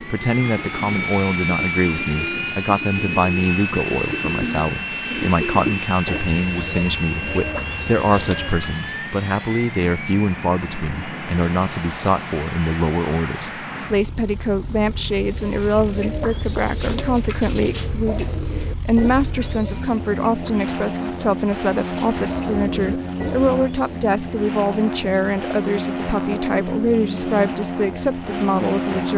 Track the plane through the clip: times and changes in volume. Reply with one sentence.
The plane can be heard from 0.0 to 29.1 s, getting quieter then louder.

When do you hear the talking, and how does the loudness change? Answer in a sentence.
You can hear the talking from 0.0 to 29.1 s, at a steady volume.